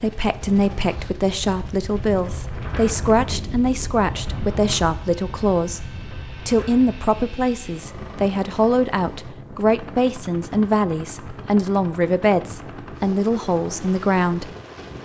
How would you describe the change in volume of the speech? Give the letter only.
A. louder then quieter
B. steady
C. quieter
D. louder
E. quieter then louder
B.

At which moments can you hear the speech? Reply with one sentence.
The speech can be heard from 0.0 to 14.6 s.